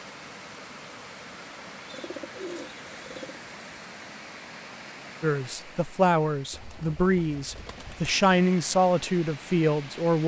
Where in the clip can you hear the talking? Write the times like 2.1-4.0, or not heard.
5.2-10.2.